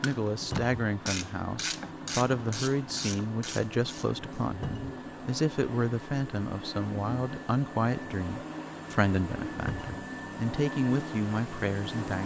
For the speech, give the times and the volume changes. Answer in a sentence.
The speech can be heard from 0.0 to 12.2 s, at a steady volume.